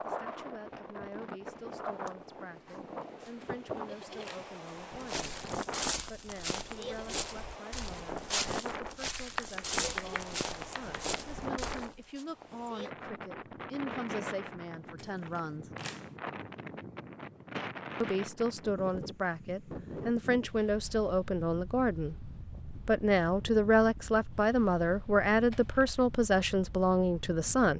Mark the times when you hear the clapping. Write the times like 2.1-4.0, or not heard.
9.2-11.2.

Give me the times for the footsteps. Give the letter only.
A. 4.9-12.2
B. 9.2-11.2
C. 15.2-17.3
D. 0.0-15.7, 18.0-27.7
A.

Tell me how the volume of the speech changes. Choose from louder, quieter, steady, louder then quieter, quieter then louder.
louder.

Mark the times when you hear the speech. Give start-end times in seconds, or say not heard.
0.0-15.7, 18.0-27.7.